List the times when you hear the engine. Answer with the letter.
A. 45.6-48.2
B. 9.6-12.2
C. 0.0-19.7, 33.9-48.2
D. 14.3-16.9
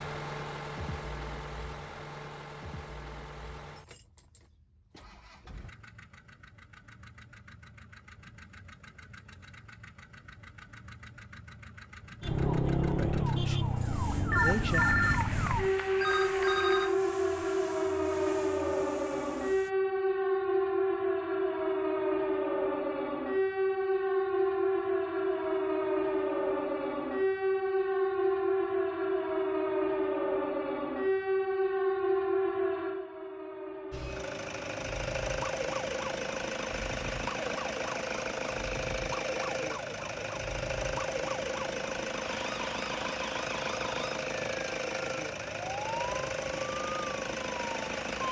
C.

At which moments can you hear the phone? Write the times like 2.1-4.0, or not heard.
14.3-16.9.